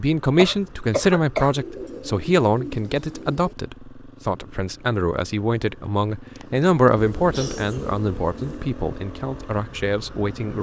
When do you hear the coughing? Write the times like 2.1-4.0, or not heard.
0.3-1.6, 6.3-8.0.